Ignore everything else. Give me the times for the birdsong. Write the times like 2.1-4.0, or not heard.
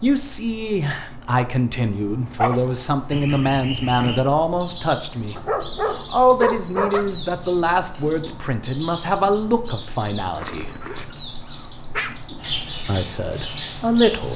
3.1-14.3.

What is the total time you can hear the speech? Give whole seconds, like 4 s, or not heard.
12 s.